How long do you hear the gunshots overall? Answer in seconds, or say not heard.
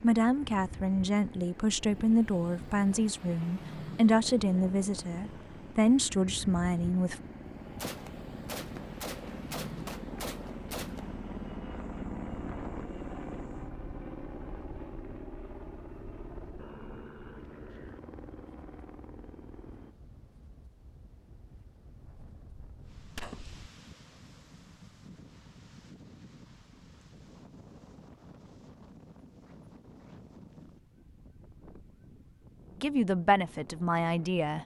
5 s.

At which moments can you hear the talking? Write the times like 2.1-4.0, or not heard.
0.0-7.2, 32.8-34.6.